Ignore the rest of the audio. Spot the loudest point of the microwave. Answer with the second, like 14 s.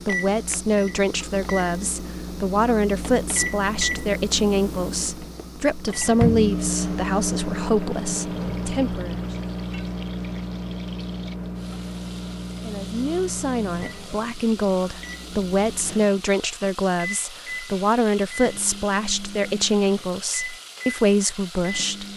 7 s.